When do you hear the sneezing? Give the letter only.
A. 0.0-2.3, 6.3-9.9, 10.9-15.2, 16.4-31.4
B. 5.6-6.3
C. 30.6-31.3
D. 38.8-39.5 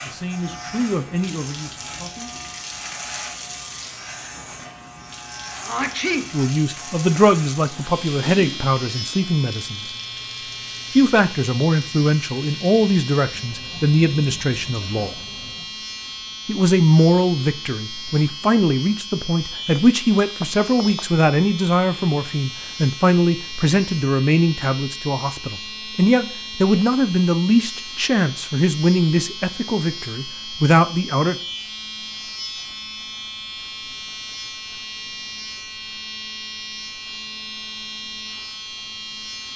B.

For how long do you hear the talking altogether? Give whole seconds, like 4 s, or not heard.
25 s.